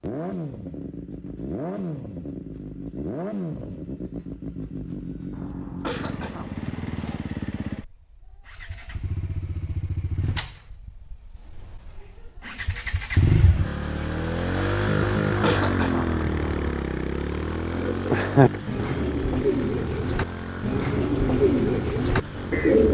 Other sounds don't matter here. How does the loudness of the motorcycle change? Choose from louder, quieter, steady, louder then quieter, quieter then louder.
louder then quieter.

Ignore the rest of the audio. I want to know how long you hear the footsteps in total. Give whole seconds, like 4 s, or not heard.
not heard.